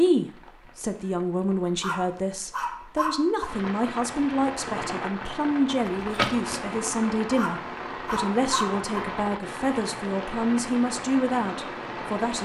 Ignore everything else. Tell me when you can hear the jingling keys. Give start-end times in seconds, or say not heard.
5.8-6.8.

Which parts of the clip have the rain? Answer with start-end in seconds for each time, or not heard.
0.0-12.4.